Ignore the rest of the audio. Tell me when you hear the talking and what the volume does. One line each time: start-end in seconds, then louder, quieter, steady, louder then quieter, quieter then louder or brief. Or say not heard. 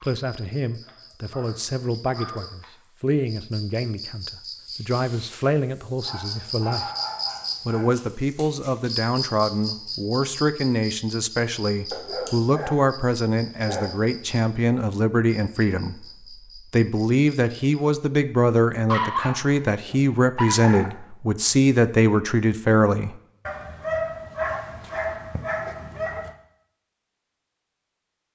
0.0-6.9 steady
7.7-16.1 steady
16.7-23.1 steady.